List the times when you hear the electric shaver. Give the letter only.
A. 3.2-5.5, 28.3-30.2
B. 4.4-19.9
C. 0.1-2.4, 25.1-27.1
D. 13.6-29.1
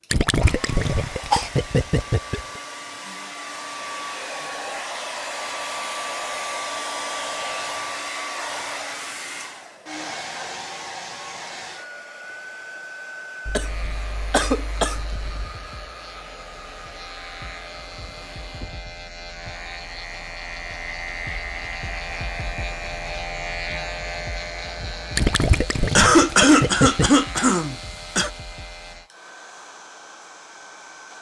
D.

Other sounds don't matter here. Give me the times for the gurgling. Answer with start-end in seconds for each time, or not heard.
0.1-2.4, 25.1-27.1.